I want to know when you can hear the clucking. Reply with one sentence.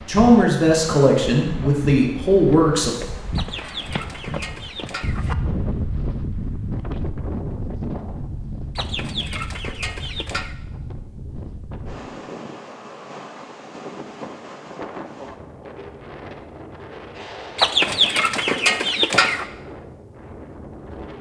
You can hear the clucking from 3.4 to 5.3 s, from 8.8 to 10.6 s and from 17.6 to 19.4 s.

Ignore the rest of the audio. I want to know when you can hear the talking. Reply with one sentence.
The talking can be heard from 0.1 to 3.0 s.